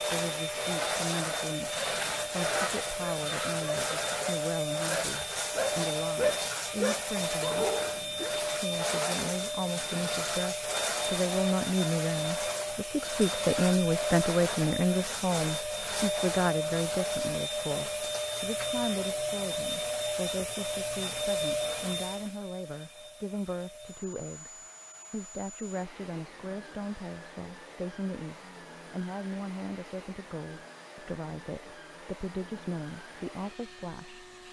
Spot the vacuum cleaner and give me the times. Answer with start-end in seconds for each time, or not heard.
0.0-34.4.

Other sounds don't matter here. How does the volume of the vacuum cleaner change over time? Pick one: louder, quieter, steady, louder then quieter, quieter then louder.
quieter.